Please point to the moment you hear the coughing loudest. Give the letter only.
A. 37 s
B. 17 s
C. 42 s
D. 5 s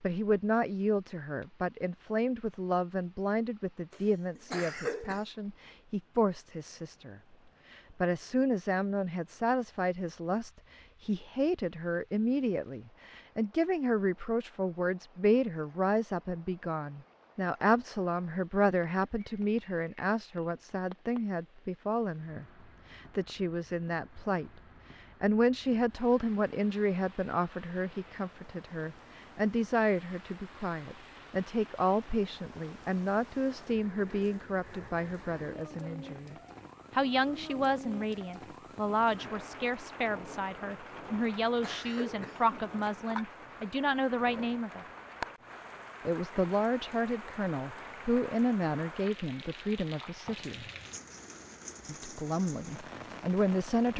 D.